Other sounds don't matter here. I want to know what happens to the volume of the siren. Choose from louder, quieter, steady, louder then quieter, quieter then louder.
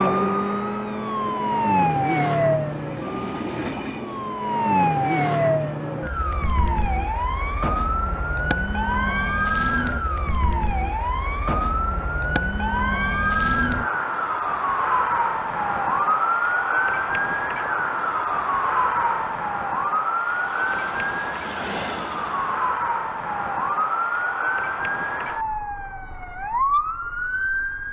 steady.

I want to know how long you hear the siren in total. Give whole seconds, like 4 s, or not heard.
28 s.